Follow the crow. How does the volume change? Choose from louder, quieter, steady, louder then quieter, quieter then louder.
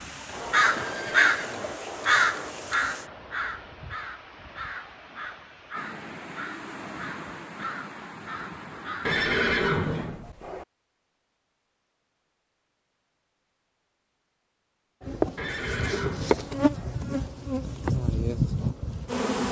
quieter.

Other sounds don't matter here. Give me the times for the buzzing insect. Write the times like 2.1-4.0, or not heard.
0.0-3.1, 15.0-19.4.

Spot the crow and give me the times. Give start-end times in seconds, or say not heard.
0.3-9.2.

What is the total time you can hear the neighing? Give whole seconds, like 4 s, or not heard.
4 s.